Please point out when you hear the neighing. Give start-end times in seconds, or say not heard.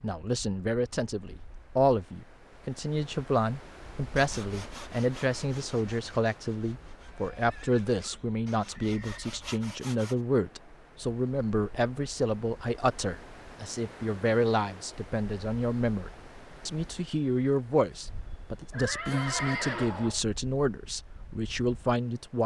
7.1-9.2, 18.7-20.2.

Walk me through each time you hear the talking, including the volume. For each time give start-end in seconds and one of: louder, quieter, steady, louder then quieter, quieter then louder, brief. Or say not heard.
0.0-22.4 steady.